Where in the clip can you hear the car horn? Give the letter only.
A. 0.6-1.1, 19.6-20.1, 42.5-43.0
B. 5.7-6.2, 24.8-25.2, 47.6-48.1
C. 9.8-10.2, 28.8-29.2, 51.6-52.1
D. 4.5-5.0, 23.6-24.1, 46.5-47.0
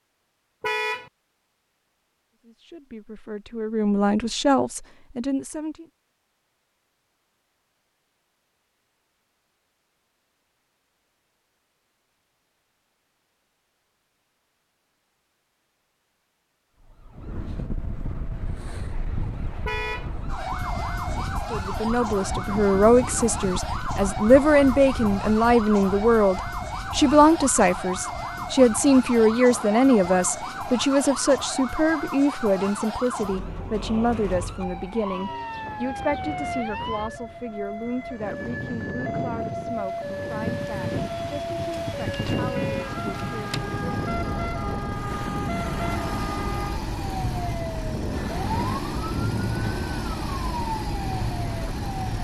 A.